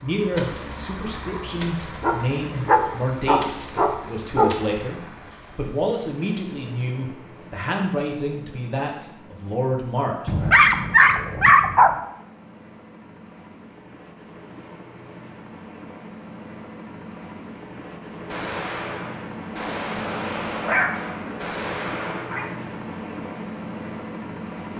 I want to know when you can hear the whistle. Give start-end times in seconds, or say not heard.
not heard.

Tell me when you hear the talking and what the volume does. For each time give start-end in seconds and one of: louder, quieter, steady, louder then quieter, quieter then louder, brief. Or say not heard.
0.0-10.3 steady.